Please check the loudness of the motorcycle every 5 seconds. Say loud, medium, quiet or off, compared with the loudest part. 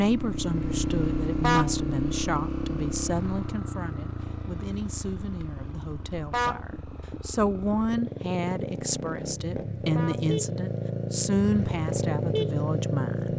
loud, medium, loud.